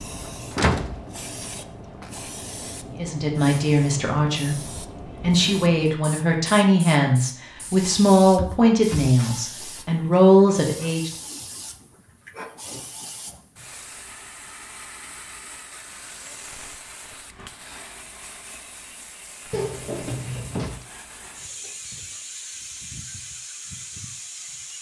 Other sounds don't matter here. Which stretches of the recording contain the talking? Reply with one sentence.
You can hear the talking from 3.0 to 4.5 s and from 5.2 to 11.1 s.